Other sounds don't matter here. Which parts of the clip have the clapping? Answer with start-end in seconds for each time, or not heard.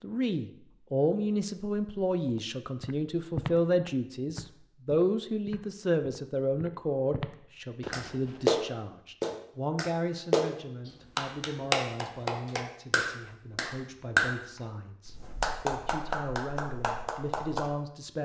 7.9-10.5, 11.2-14.3, 15.1-17.7.